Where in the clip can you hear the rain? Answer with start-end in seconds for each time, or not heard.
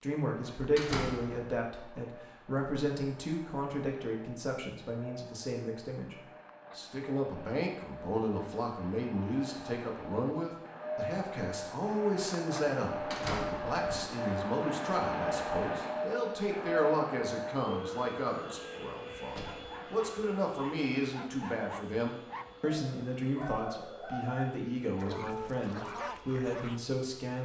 not heard.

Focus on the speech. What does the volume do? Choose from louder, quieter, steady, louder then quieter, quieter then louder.
steady.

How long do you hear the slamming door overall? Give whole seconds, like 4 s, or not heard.
2 s.